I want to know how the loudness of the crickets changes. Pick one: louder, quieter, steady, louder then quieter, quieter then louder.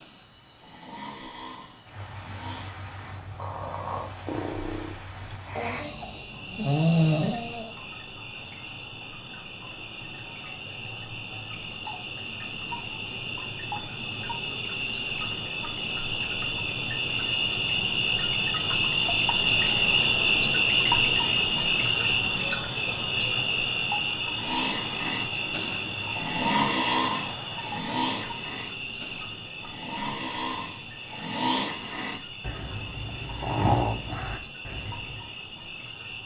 louder then quieter.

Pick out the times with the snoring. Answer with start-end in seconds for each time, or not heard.
0.0-7.7, 24.3-35.3.